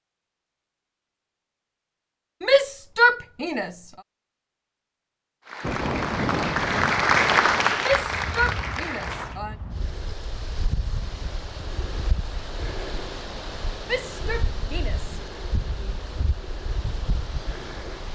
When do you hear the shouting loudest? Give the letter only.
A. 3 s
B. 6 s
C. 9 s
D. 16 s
A.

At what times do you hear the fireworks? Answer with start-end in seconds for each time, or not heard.
not heard.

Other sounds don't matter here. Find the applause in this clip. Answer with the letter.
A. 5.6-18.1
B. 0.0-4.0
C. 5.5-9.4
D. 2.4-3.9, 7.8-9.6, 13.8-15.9
C.